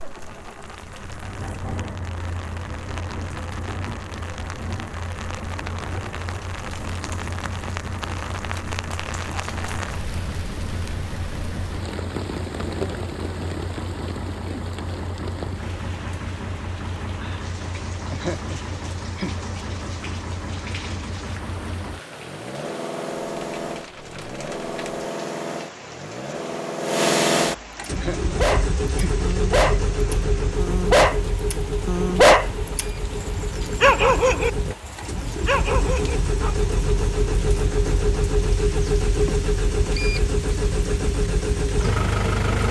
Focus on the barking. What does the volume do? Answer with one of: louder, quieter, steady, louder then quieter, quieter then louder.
louder then quieter.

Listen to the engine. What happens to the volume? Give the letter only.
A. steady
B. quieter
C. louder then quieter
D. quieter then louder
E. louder
E.